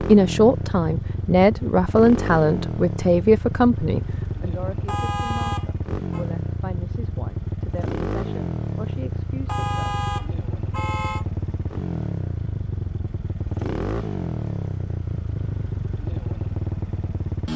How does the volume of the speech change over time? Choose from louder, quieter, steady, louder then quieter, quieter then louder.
quieter.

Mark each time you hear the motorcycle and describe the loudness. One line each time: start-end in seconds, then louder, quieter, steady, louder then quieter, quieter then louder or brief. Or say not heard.
0.0-17.5 steady.